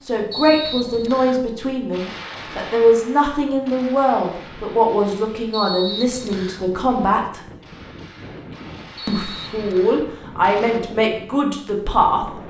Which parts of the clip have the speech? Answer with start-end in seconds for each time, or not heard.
0.1-7.4, 9.1-12.4.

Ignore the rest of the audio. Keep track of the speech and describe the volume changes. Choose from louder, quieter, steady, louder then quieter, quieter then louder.
steady.